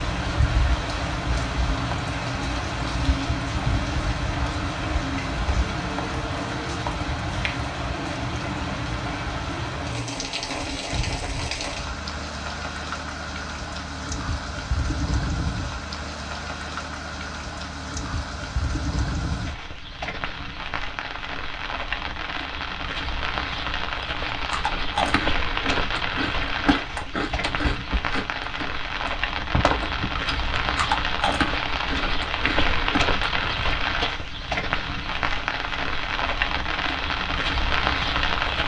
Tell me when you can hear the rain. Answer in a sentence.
You can hear the rain from 0.0 to 38.6 s.